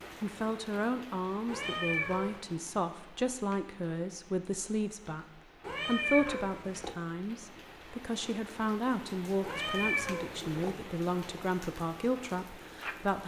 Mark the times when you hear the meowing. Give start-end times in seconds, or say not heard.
1.4-2.4, 5.6-7.0, 9.4-10.8.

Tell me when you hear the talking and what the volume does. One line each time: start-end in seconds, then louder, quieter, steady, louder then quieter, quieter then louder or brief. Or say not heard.
0.2-13.2 steady.